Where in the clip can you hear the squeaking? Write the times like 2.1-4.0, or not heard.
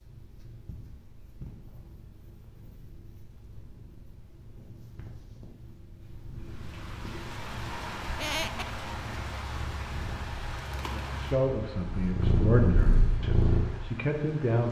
8.1-8.8.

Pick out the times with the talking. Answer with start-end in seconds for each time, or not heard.
11.0-14.6.